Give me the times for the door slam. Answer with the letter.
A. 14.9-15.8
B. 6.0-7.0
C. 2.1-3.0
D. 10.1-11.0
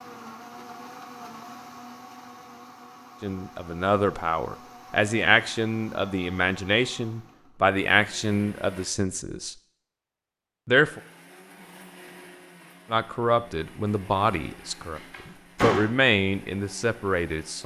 A.